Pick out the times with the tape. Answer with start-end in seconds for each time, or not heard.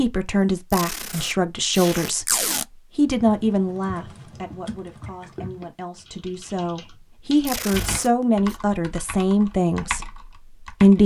0.7-2.6, 7.5-8.6.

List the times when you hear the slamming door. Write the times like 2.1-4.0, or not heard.
not heard.